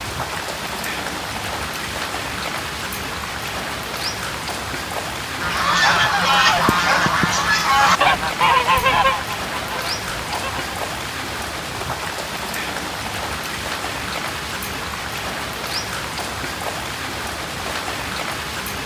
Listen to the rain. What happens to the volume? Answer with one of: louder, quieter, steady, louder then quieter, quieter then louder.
steady.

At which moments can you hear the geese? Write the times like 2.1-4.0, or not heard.
5.4-10.8.